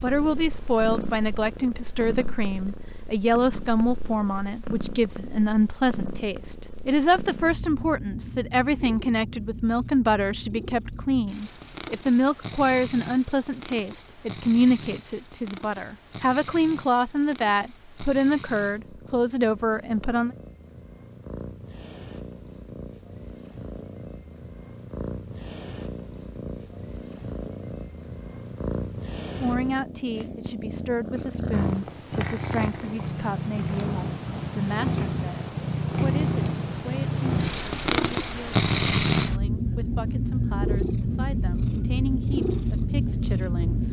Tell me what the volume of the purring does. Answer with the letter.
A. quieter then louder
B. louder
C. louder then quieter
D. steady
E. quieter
B.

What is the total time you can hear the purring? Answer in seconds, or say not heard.
44 s.